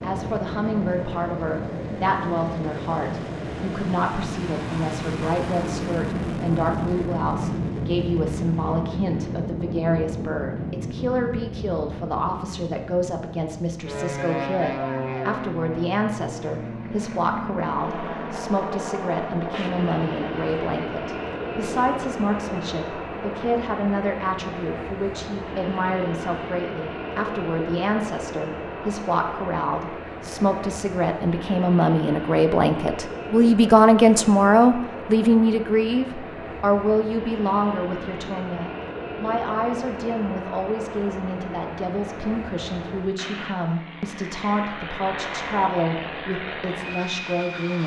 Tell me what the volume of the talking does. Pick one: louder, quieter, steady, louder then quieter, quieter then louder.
louder then quieter.